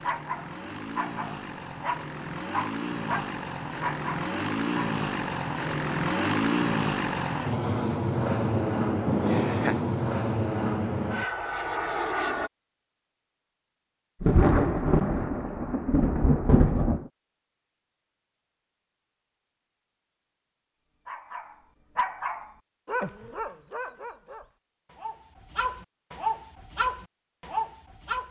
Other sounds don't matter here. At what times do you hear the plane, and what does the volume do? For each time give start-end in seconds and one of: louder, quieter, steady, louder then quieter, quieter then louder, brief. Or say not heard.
0.0-12.5 louder.